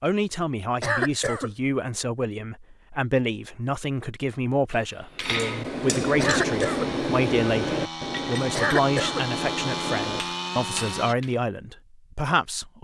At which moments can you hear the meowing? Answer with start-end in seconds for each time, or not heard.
not heard.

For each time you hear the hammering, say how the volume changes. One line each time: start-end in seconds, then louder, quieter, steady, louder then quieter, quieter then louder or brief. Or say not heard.
4.7-11.4 quieter.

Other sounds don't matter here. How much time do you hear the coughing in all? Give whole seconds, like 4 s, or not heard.
2 s.